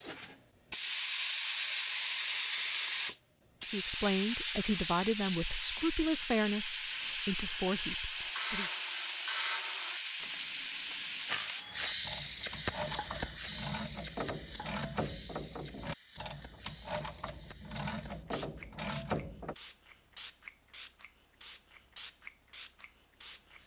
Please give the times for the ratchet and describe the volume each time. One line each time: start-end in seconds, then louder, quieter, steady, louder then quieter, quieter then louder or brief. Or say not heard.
8.2-19.6 steady.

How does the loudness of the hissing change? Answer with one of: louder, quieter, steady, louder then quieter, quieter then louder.
quieter.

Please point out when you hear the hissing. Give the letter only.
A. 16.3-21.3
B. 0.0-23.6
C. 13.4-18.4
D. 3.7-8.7
B.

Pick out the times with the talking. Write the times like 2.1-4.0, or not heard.
3.7-8.7.